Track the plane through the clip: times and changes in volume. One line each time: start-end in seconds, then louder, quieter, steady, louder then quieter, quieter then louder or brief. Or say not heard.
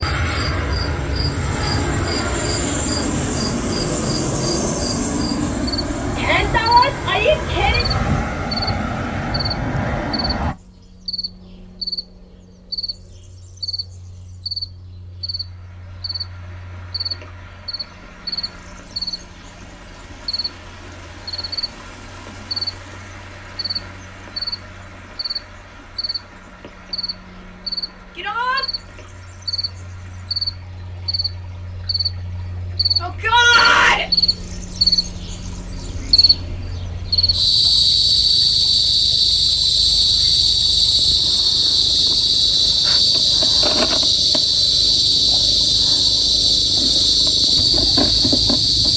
0.0-10.6 steady.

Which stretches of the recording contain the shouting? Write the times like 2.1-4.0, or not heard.
6.2-7.8, 28.1-28.6, 33.0-34.0.